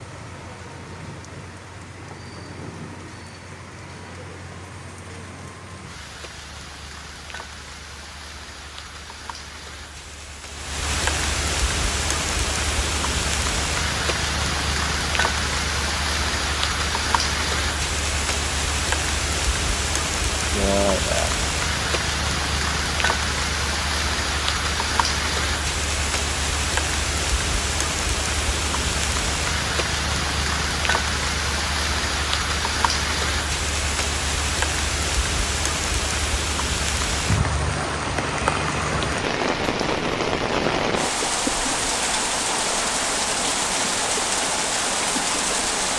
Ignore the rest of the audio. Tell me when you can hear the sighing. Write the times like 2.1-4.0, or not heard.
20.5-21.4.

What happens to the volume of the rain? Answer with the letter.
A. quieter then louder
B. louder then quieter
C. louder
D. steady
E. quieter
C.